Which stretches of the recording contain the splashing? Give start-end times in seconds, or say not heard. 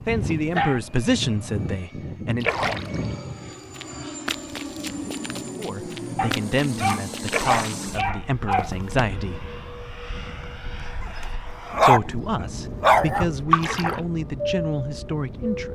2.4-3.0, 7.2-7.8, 13.5-14.0.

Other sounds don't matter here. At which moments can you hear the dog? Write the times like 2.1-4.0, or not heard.
0.1-0.8, 6.2-8.7, 11.0-12.0, 12.8-13.2.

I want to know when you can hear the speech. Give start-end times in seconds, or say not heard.
0.1-2.5, 5.5-9.6, 11.8-15.6.